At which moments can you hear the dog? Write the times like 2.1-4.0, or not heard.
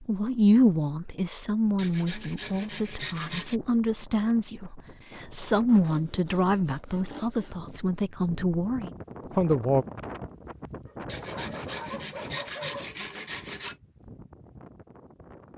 10.8-12.9.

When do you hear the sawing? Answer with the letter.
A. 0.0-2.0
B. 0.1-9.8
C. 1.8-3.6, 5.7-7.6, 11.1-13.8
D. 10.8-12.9
C.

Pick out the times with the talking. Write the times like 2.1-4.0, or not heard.
0.1-9.8.